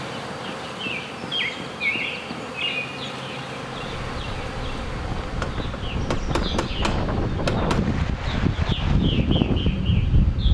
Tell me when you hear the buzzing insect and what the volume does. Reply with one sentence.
The buzzing insect can be heard from 0.0 to 10.4 s, getting quieter.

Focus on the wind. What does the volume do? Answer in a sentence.
The volume of the wind goes up.